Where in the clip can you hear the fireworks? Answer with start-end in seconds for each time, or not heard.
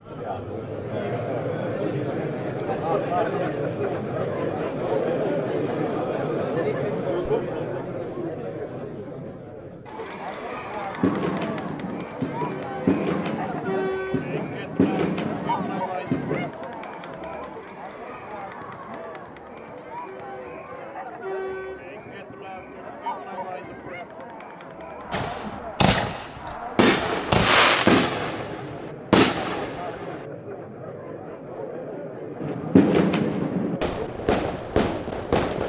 10.9-16.5, 25.1-30.2, 32.4-35.6.